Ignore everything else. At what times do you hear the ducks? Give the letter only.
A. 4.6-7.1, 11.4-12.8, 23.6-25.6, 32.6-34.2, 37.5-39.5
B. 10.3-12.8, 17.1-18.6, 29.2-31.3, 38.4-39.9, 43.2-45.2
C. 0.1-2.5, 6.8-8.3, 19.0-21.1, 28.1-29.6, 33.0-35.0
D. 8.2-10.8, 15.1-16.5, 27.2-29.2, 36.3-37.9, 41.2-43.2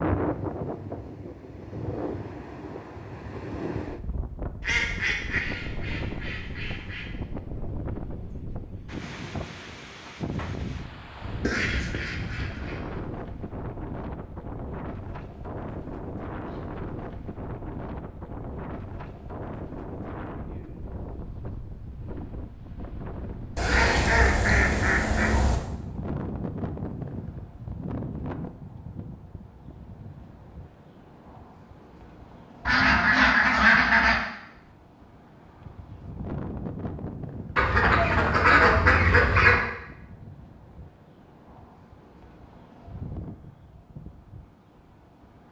A.